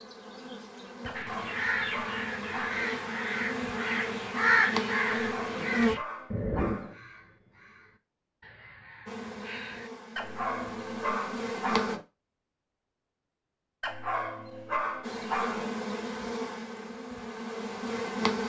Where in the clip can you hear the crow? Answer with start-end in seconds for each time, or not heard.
1.1-9.9.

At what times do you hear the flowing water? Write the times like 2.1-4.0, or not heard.
not heard.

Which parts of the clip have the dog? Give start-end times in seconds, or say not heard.
1.1-2.9, 5.2-7.0, 10.2-12.1, 13.8-15.7.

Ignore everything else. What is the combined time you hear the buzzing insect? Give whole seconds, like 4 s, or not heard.
12 s.